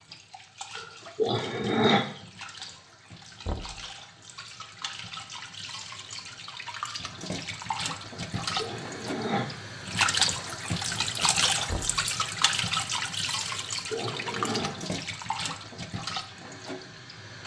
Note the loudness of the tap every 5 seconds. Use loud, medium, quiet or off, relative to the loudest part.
quiet, medium, loud, medium.